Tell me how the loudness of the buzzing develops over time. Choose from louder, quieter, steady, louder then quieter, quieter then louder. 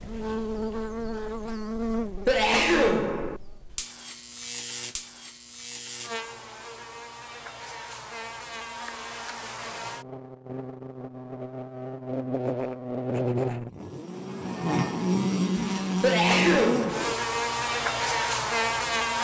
quieter then louder.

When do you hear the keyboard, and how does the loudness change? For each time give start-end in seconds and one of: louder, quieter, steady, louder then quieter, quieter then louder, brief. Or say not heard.
not heard.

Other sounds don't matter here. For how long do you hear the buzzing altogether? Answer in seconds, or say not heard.
19 s.